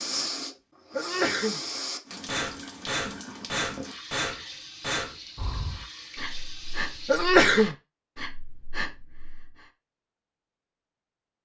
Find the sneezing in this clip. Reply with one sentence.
The sneezing can be heard from 0.9 to 1.6 s and from 7.0 to 7.8 s.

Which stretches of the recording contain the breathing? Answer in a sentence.
You can hear the breathing from 0.0 to 9.7 s.